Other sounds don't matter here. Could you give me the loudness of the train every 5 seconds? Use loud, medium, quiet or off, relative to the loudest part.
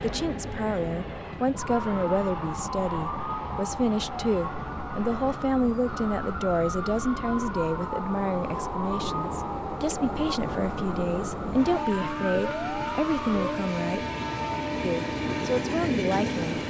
medium, medium, loud, loud.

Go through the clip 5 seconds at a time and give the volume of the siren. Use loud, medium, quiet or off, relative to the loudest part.
loud, loud, loud, off.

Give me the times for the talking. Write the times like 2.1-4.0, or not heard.
0.0-14.1, 14.8-16.6.